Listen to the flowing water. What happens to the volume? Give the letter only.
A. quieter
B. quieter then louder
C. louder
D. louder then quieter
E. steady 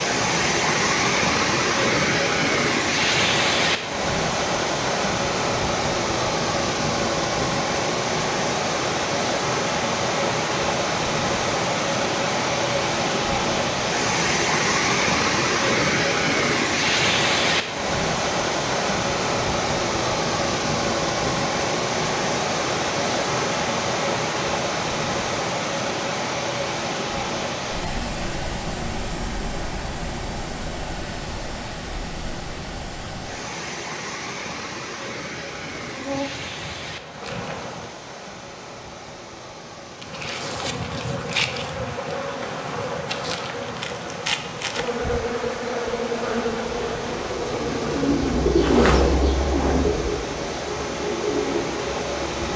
A.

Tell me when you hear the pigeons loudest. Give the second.
49 s.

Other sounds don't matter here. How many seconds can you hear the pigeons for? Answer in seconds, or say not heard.
6 s.